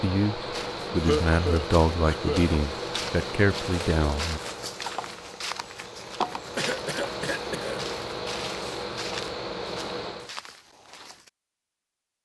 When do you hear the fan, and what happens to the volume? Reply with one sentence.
The fan can be heard from 0.0 to 10.3 s, getting quieter then louder.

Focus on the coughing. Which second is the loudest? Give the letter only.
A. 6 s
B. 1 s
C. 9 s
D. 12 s
B.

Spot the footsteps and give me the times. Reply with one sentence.
You can hear the footsteps from 0.5 to 11.3 s.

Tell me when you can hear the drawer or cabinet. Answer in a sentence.
You can't hear the drawer or cabinet here.